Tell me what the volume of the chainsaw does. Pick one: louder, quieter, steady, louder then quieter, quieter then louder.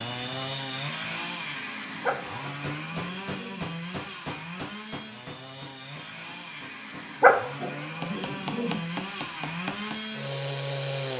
quieter then louder.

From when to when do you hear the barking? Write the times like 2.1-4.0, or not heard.
2.0-3.6, 7.2-8.8.